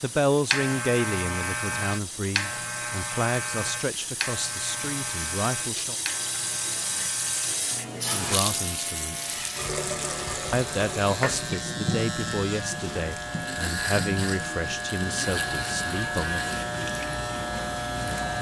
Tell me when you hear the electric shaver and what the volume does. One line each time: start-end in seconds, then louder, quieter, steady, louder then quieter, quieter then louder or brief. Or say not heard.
0.0-18.3 quieter then louder.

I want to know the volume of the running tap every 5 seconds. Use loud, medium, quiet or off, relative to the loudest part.
medium, loud, loud, medium.